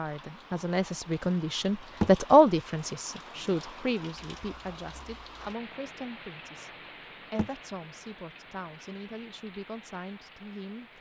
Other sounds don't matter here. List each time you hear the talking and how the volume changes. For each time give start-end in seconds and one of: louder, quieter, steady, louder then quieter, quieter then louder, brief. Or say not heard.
0.0-10.9 quieter.